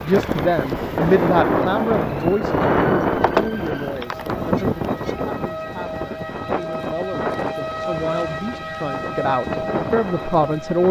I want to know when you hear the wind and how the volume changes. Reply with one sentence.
The wind can be heard from 0.0 to 10.8 s, getting quieter.